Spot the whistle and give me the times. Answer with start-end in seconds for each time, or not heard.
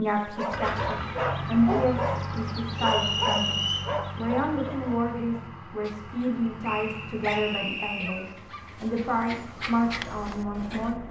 2.8-3.9, 6.6-8.2.